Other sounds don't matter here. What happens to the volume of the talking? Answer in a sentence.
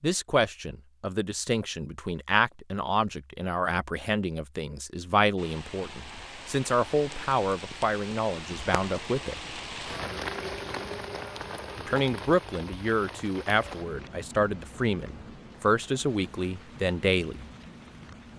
The volume of the talking stays about the same.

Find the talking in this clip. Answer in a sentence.
The talking can be heard from 0.0 to 9.4 s and from 11.8 to 17.4 s.